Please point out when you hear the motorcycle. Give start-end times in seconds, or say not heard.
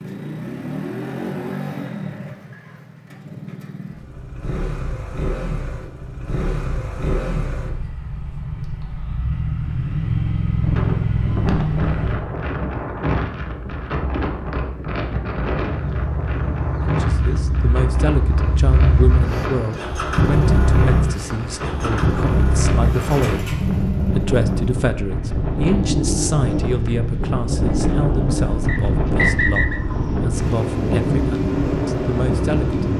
0.0-12.2, 15.7-32.9.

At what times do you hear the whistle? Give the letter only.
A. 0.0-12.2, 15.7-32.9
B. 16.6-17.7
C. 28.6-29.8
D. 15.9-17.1
C.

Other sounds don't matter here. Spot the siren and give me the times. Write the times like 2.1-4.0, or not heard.
not heard.